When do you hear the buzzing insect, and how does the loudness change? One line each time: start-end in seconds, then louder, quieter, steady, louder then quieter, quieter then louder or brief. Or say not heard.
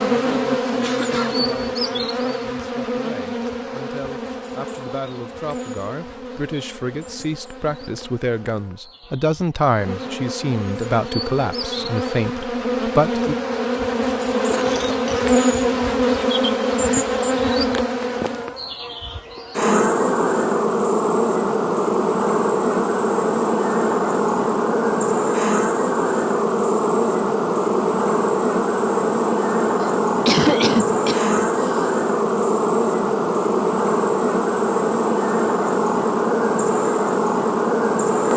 0.0-38.3 louder.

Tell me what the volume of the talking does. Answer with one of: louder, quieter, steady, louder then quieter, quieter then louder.
louder.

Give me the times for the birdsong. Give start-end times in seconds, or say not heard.
not heard.